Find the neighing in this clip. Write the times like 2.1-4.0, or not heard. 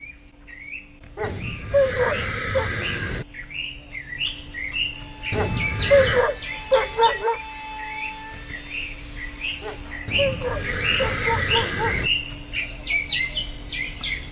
1.2-3.2, 5.3-6.2, 10.1-12.1.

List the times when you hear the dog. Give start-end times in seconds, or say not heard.
1.1-2.7, 5.3-7.4, 9.6-12.1.